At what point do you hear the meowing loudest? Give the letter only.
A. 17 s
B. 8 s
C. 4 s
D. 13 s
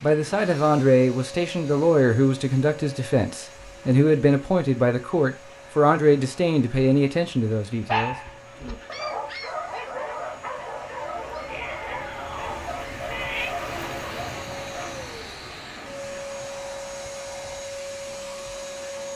D.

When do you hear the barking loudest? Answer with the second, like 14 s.
8 s.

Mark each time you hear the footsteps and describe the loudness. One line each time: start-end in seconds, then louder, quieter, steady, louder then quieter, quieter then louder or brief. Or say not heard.
not heard.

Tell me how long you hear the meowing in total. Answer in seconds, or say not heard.
2 s.